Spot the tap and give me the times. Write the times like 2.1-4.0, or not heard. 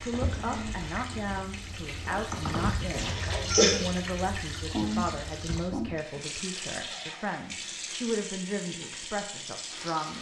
0.0-10.1.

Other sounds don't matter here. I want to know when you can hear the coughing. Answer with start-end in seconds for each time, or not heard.
3.0-3.8.